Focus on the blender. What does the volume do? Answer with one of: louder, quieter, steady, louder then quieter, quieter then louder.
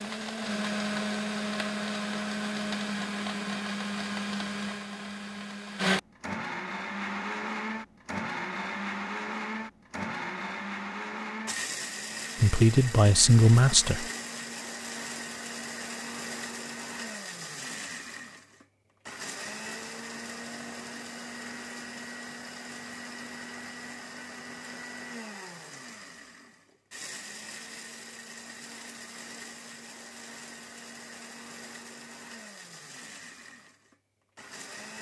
quieter.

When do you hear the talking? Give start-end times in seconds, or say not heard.
12.4-14.1.